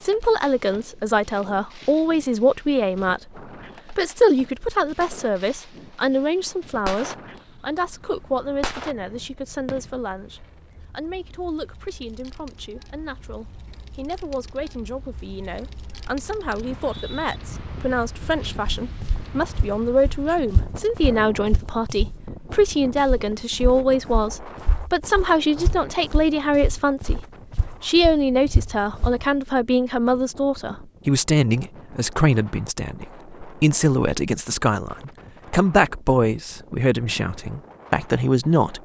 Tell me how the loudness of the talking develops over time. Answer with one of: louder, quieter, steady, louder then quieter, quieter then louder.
quieter then louder.